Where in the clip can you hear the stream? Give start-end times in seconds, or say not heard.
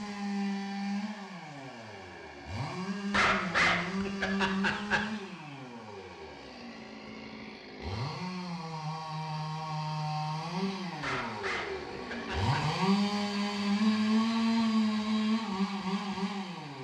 not heard.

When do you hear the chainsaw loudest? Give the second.
14 s.